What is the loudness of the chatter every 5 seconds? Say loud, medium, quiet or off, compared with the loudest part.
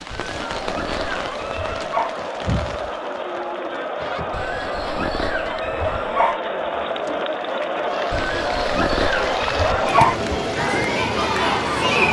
medium, loud, loud.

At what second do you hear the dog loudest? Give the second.
10 s.